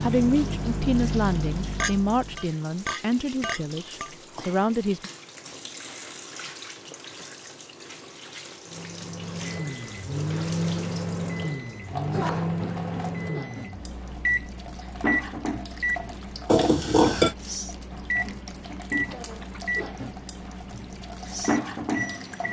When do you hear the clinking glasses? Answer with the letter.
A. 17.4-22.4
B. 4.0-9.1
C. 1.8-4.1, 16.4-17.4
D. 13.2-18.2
C.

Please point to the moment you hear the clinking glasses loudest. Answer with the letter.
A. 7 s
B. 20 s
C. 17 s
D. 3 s
C.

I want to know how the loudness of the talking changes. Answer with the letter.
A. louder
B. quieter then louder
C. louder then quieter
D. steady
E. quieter
D.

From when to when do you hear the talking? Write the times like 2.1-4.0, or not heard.
0.0-5.1.